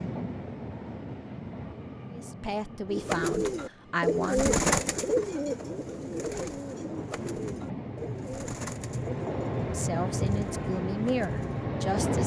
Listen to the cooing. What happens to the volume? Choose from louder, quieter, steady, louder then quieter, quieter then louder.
quieter.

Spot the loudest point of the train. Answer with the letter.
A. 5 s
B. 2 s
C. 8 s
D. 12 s
D.